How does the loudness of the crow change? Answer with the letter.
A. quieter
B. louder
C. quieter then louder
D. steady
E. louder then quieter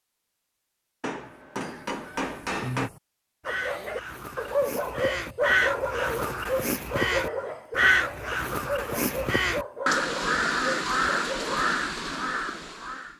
B.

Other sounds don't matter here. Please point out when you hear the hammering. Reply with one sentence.
You can hear the hammering from 1.0 to 2.9 s.